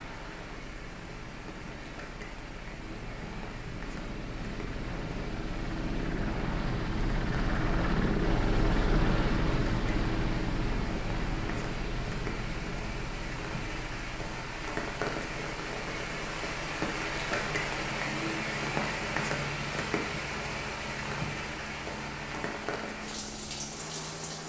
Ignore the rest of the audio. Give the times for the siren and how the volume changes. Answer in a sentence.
You can't hear the siren here.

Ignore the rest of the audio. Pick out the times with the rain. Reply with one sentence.
You can hear the rain from 0.0 to 24.4 s.